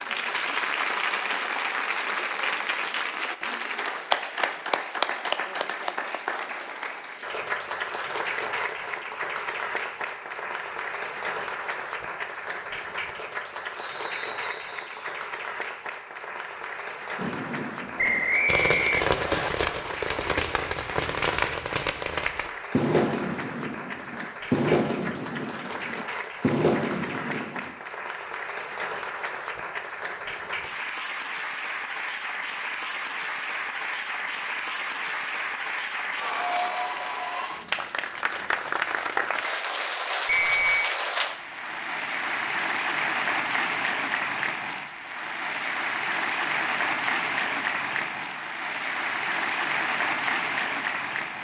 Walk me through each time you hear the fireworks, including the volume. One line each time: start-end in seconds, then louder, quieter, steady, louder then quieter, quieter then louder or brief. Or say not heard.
17.1-27.8 steady.